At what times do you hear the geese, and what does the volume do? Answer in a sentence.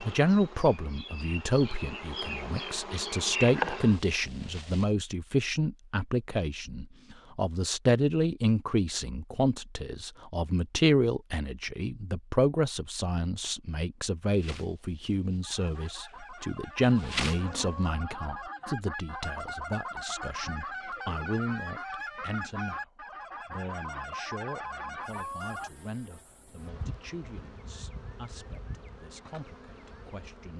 You can hear the geese from 15.4 to 25.7 s, getting louder.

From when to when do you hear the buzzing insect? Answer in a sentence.
The buzzing insect can be heard from 0.0 to 4.8 s, from 14.3 to 18.0 s and from 25.1 to 30.5 s.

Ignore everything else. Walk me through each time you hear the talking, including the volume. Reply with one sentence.
The talking can be heard from 0.0 to 30.5 s, getting quieter.